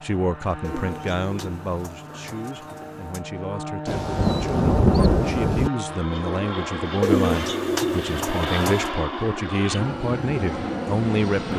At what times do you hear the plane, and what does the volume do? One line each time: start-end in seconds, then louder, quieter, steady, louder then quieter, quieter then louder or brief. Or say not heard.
0.0-11.5 louder.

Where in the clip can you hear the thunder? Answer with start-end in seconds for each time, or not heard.
3.9-5.7.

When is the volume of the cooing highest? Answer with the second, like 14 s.
7 s.